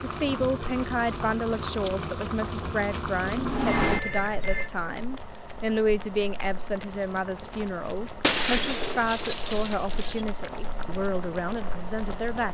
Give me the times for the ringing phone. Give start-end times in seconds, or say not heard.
3.8-4.7.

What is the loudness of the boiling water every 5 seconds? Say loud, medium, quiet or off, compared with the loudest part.
loud, medium, medium.